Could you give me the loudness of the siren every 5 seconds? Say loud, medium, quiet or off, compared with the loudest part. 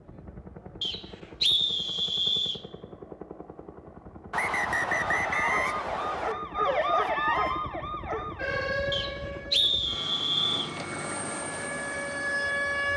off, loud, loud.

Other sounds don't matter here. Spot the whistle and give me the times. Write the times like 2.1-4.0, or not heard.
0.8-2.6, 4.3-6.3, 8.9-10.7.